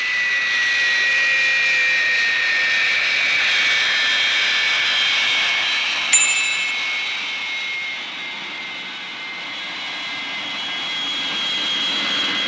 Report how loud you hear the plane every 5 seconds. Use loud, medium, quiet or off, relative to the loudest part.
loud, medium, medium.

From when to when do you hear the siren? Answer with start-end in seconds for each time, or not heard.
not heard.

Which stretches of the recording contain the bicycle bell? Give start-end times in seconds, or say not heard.
6.1-6.7.